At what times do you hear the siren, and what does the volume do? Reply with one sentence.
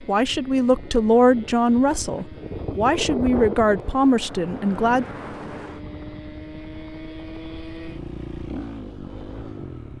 You can't hear the siren here.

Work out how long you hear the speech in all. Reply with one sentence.
You can hear the speech for 5 seconds altogether.